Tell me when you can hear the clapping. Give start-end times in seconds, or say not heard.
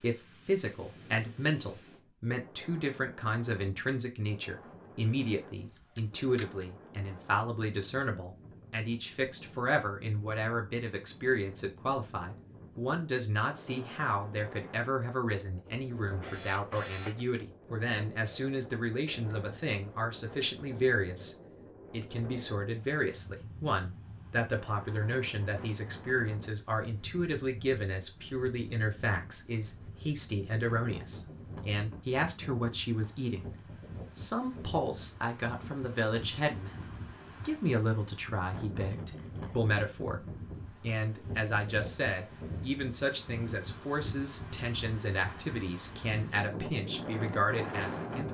not heard.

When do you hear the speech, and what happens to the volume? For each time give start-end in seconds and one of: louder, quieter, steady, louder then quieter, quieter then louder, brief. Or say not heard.
0.0-48.2 steady.